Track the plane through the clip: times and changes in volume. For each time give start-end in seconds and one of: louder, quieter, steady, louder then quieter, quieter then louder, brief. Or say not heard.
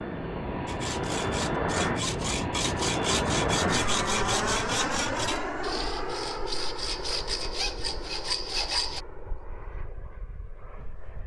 0.0-11.2 quieter.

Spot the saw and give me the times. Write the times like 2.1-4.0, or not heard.
0.7-9.0.